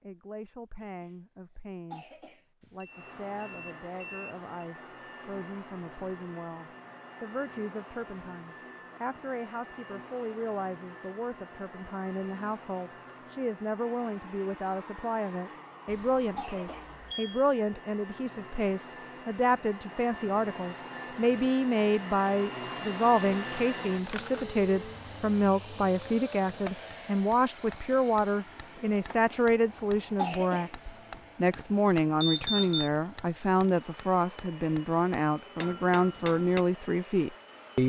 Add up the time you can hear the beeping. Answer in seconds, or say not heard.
4 s.